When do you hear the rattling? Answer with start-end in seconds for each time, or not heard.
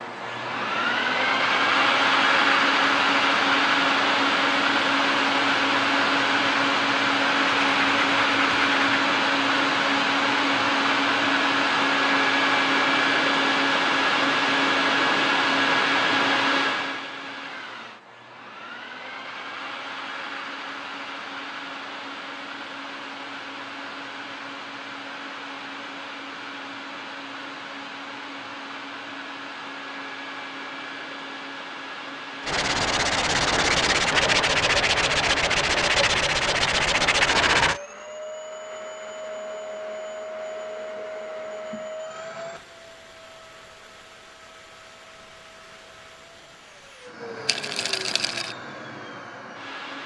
47.5-48.5.